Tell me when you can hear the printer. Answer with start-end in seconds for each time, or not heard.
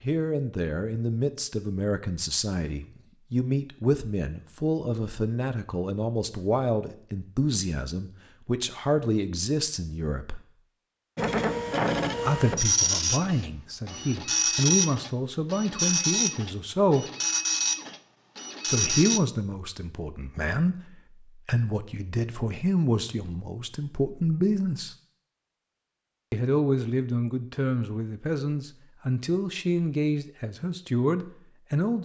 11.2-19.2.